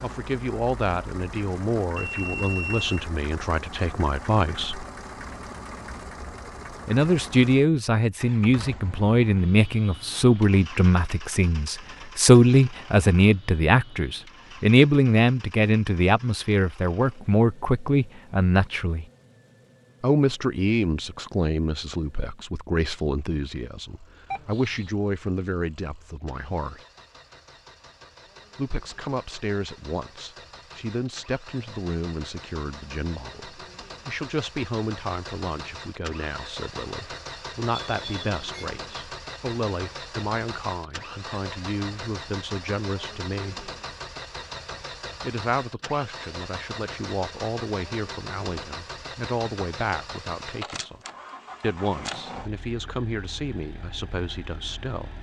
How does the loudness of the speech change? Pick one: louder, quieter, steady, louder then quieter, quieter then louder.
quieter.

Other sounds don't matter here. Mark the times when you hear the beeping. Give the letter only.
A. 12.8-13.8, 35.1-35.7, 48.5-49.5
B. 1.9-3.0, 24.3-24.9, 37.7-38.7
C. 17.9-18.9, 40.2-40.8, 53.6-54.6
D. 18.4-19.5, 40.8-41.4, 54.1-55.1
B.